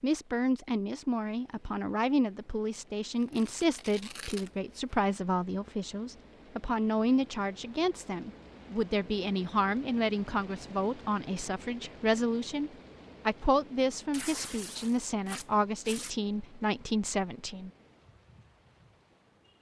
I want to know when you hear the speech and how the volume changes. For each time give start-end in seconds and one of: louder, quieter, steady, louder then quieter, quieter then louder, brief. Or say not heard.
0.0-17.7 steady.